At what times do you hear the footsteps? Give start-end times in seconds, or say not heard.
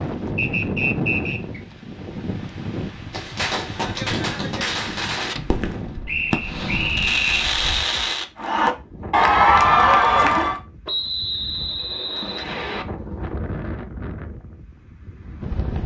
not heard.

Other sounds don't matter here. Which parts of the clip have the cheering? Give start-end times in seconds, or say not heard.
8.3-10.6.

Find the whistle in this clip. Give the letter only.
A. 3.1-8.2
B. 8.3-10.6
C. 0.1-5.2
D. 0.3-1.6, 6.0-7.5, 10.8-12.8
D.